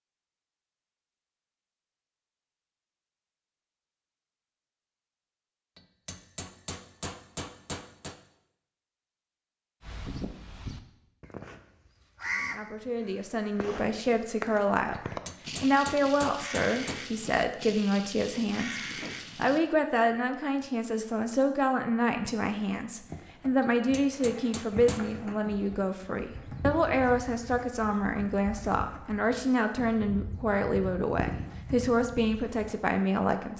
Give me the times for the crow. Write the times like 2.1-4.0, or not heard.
9.8-19.6.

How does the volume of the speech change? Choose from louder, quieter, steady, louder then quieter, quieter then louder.
steady.